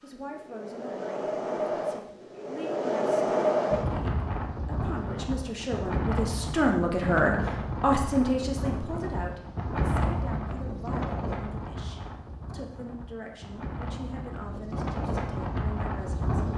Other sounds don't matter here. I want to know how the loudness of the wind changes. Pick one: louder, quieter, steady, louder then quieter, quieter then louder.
quieter.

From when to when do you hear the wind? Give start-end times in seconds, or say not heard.
0.0-16.5.